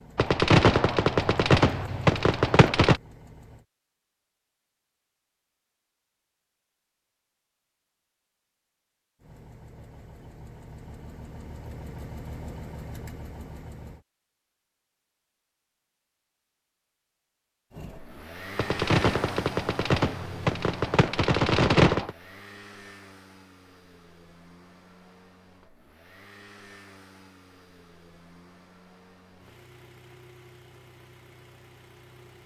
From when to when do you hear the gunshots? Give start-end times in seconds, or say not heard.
0.1-3.0, 18.6-22.1.